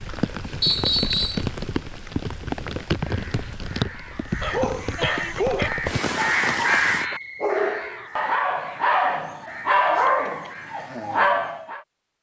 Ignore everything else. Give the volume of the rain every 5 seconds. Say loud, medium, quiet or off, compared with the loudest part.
loud, loud, off.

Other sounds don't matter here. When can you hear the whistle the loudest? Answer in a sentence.
The volume of the whistle peaks at 1 second.